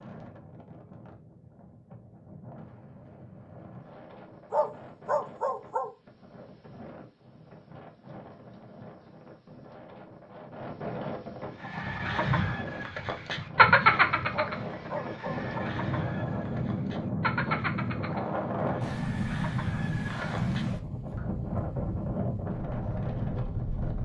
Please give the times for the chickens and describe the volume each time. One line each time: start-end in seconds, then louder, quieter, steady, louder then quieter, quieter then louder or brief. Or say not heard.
11.6-21.2 quieter.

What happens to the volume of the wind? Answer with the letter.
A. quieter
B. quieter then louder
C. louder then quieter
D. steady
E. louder
E.